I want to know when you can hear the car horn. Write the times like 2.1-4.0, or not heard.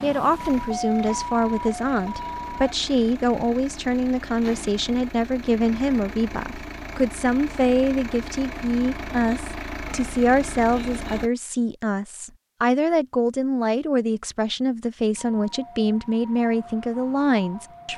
not heard.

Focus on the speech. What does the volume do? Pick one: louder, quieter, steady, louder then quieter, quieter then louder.
steady.